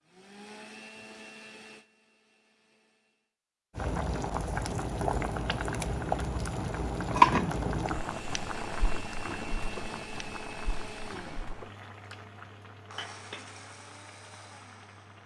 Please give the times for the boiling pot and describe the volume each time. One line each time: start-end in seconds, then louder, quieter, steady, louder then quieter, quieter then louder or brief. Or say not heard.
3.8-15.2 louder then quieter.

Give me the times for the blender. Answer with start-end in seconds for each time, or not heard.
0.1-3.4, 8.0-15.2.